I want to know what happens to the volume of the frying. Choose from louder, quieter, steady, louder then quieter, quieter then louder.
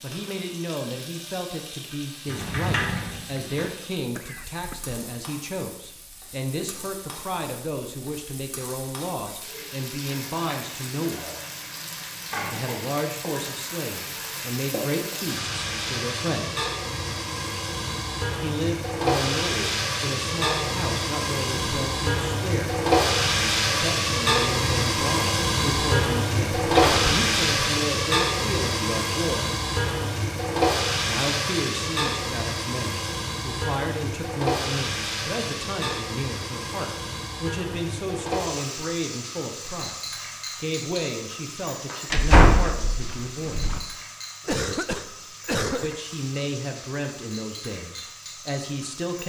louder then quieter.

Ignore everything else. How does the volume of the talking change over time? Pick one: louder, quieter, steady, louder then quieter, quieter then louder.
steady.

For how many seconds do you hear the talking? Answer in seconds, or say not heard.
42 s.